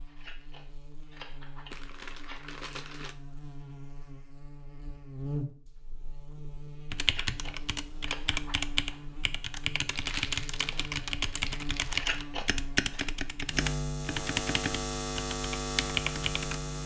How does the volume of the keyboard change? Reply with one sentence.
The loudness of the keyboard stays about the same.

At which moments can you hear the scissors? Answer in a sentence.
The scissors can be heard from 0.1 to 2.5 s, from 7.0 to 9.0 s and from 11.8 to 13.1 s.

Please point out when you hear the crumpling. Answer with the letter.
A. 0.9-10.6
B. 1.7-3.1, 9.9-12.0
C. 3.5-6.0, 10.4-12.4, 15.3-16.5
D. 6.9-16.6
B.